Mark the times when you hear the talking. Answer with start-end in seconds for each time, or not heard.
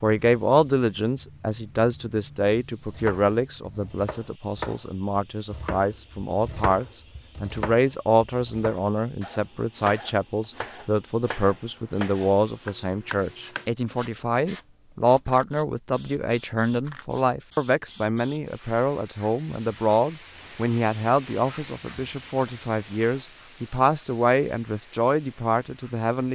0.0-26.3.